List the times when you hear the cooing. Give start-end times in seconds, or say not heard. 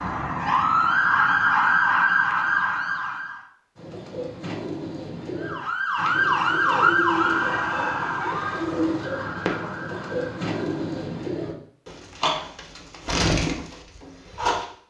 3.8-14.7.